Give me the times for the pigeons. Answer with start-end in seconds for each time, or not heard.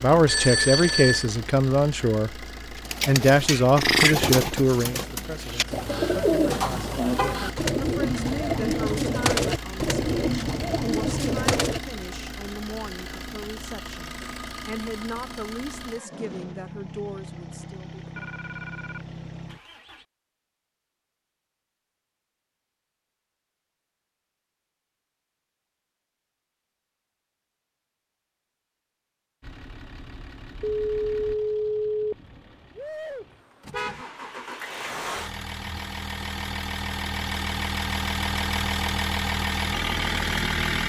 2.8-11.8.